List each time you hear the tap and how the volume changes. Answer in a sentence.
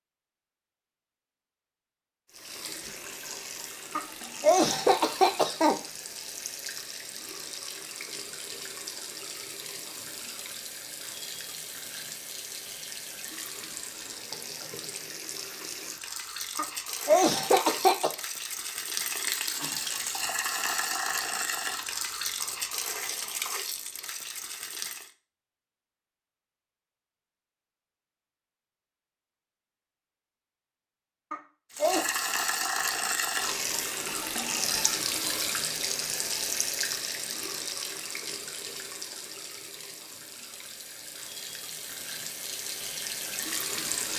The tap can be heard from 2.2 to 25.1 s, getting louder; and from 31.7 to 44.1 s, getting quieter then louder.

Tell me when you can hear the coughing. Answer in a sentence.
You can hear the coughing from 4.0 to 5.8 s, from 16.6 to 18.1 s and from 31.3 to 32.0 s.